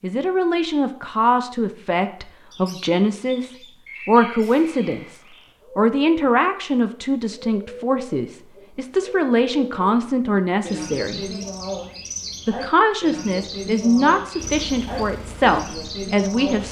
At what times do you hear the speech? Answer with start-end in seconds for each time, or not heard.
0.0-11.3, 12.4-16.6.